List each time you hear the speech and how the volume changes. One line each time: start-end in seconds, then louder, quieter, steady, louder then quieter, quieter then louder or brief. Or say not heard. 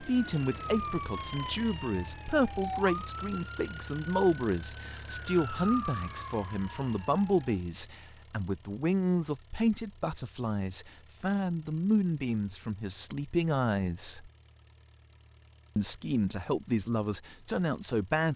0.0-14.3 steady
15.8-18.3 brief.